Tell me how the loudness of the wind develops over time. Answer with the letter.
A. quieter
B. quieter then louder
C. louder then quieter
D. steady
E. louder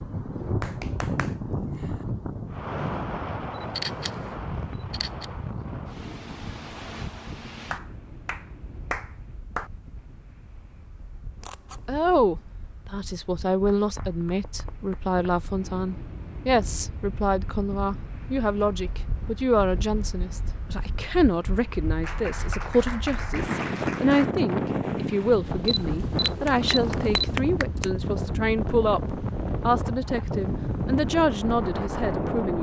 B.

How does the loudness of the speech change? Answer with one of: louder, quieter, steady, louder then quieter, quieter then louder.
steady.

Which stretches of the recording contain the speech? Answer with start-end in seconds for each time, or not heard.
11.8-32.5.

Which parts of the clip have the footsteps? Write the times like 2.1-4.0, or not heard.
not heard.